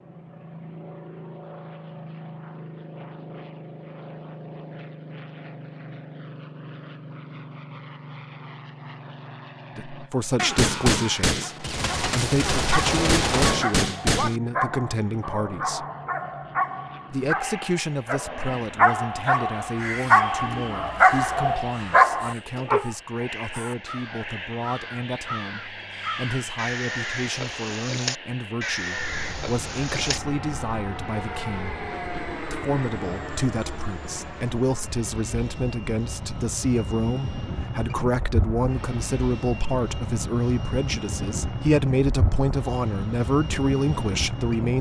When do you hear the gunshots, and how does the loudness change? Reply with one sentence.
The gunshots can be heard from 10.3 to 14.4 s, getting quieter then louder.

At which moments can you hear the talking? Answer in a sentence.
The talking can be heard from 9.8 to 15.8 s, from 17.1 to 31.8 s and from 32.5 to 44.7 s.